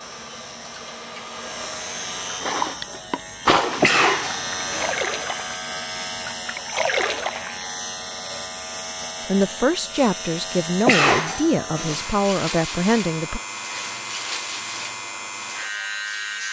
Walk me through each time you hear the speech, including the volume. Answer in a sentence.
The speech can be heard from 9.2 to 13.4 s, at a steady volume.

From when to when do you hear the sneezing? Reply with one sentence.
The sneezing can be heard from 3.8 to 5.0 s and from 10.8 to 12.0 s.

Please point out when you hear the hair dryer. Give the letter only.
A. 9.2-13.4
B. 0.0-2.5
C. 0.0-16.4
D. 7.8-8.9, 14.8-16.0
B.